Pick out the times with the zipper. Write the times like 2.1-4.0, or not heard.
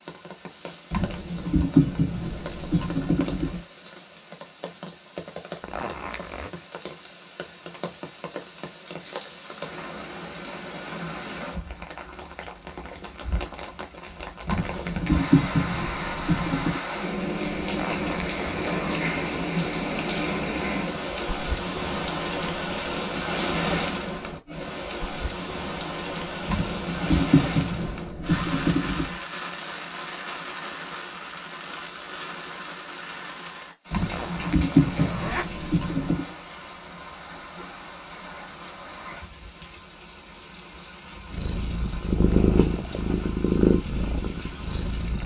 5.6-6.5, 17.6-19.1, 34.0-35.5.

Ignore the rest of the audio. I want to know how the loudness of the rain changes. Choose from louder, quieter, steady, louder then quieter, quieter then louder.
louder then quieter.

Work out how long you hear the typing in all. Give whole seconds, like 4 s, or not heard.
10 s.